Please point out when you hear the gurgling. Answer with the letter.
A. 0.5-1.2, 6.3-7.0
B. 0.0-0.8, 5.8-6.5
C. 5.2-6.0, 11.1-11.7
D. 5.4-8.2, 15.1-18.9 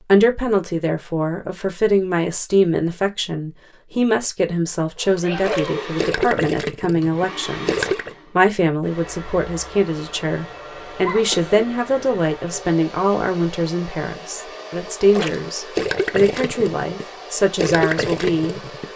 D.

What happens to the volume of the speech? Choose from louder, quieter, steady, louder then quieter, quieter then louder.
steady.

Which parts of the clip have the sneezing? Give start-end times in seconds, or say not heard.
5.2-6.0, 11.1-11.7.